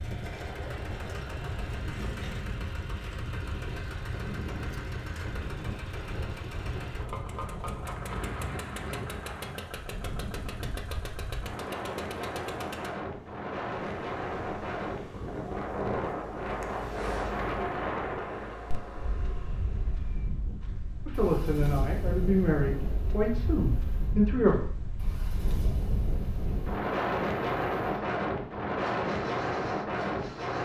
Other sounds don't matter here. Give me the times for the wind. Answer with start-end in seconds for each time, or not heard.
0.0-30.6.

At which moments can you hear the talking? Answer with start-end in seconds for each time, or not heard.
21.1-24.6.